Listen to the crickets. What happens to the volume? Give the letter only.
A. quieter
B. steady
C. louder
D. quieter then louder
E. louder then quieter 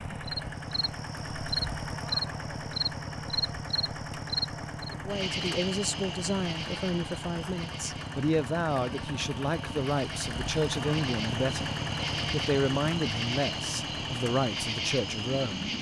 D.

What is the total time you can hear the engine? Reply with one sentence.
You can hear the engine for 16 seconds altogether.